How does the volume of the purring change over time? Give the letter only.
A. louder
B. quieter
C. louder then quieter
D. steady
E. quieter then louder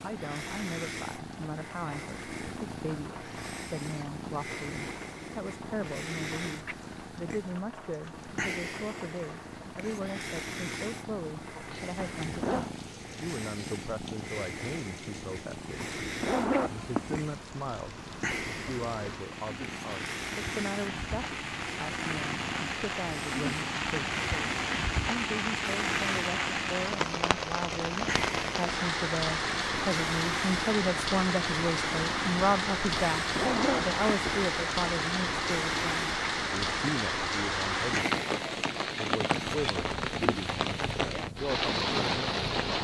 D.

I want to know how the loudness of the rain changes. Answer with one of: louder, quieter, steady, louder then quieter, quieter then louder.
louder.